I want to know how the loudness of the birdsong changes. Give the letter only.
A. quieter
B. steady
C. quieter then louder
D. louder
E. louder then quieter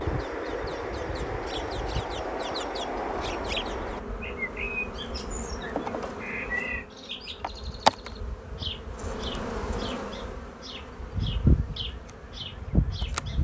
A.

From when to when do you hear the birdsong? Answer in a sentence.
You can hear the birdsong from 0.0 to 13.4 s.